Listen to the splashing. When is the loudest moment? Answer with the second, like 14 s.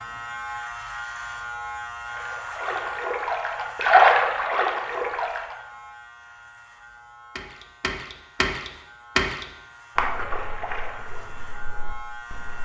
4 s.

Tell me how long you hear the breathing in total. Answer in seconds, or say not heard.
not heard.